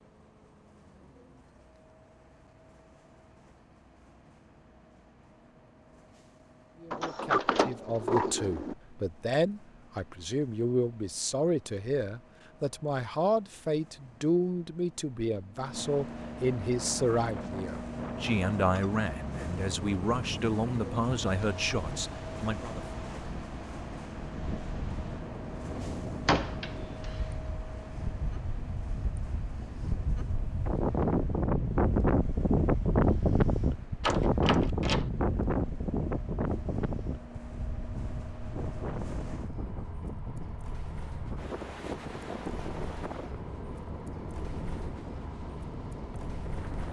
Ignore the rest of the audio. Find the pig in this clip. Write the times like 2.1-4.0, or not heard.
not heard.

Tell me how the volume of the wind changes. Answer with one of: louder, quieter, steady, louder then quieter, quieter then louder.
louder then quieter.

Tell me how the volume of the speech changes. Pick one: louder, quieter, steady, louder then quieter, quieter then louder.
steady.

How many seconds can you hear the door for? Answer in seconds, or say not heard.
4 s.